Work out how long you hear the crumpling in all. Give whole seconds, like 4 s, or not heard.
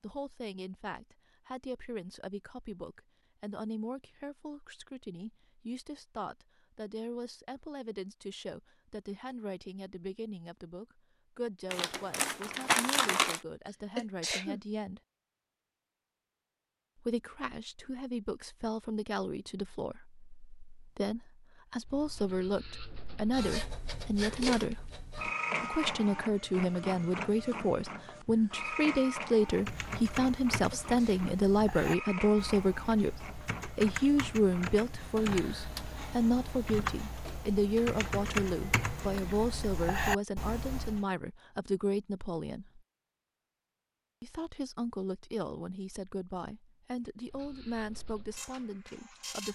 2 s.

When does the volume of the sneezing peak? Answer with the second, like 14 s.
14 s.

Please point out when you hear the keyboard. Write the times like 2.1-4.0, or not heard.
29.4-41.0.